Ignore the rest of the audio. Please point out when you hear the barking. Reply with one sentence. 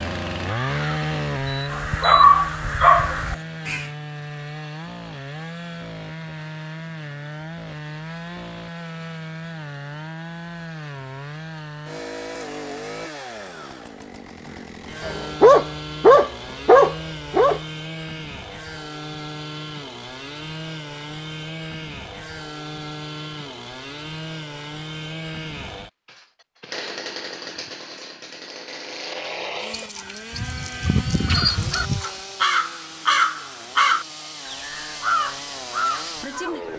You can hear the barking from 1.7 to 3.1 s, from 15.0 to 17.6 s and from 29.7 to 32.2 s.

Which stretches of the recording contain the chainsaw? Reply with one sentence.
You can hear the chainsaw from 0.0 to 36.7 s.